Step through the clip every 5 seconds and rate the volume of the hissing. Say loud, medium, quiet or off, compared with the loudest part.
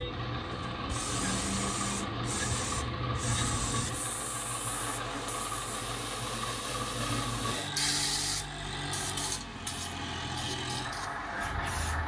loud, loud, medium.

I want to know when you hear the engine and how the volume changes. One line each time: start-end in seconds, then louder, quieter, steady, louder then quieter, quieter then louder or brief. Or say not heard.
0.0-12.0 steady.